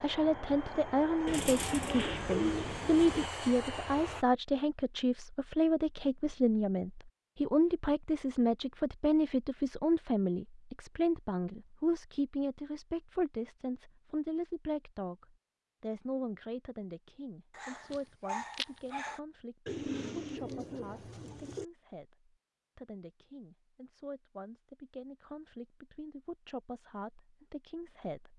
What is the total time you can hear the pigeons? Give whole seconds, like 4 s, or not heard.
4 s.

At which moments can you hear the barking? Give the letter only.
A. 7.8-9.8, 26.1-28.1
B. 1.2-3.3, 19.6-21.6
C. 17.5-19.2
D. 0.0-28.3
C.